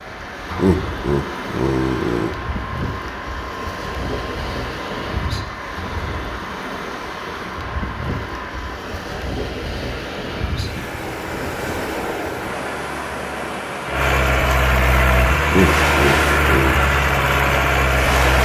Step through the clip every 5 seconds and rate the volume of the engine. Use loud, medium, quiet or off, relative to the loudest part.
quiet, quiet, medium, loud.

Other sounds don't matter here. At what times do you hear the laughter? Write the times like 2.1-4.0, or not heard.
0.6-2.3, 15.5-16.8.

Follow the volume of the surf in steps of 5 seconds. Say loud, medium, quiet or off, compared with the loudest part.
medium, medium, medium, loud.